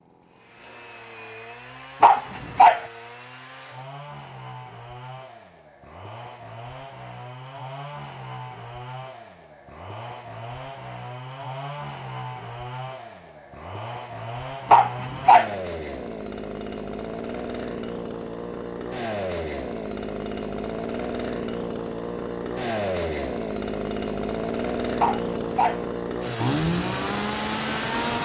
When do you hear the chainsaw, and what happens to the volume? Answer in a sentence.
The chainsaw can be heard from 0.0 to 28.2 s, getting louder.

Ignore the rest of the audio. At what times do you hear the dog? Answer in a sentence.
You can hear the dog from 2.0 to 2.9 s, from 14.7 to 15.6 s and from 25.0 to 25.9 s.